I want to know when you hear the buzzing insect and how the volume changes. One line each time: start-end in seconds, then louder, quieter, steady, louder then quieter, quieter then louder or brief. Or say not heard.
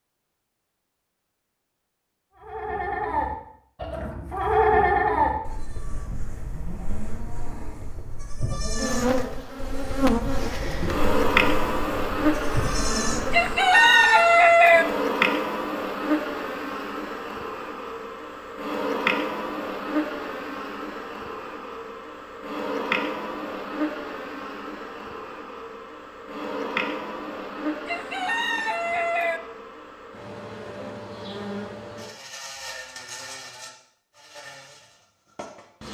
8.8-35.8 quieter.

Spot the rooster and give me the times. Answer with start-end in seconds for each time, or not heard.
13.3-14.8, 27.9-29.4.